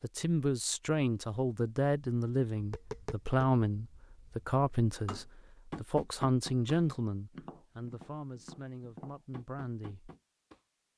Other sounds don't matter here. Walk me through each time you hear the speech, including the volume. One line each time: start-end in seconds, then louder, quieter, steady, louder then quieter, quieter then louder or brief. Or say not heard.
0.0-10.1 quieter.